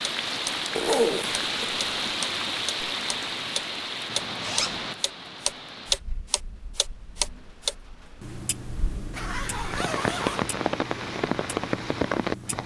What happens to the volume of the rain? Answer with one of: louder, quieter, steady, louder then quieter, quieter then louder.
quieter then louder.